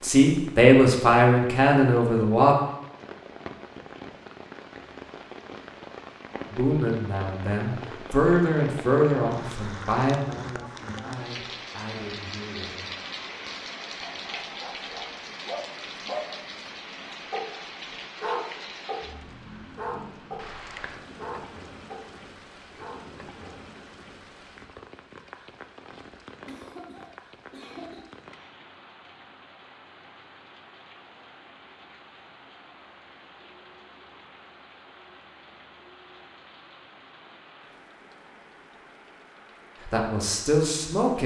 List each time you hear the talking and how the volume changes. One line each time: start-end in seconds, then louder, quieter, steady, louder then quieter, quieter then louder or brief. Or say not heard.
0.0-2.5 brief
6.5-12.9 louder then quieter
39.9-41.2 brief.